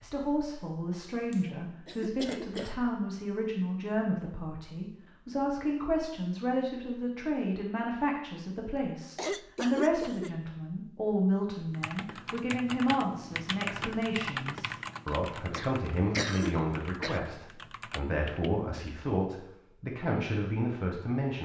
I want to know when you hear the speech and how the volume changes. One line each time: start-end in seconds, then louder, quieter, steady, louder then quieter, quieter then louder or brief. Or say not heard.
0.0-21.4 steady.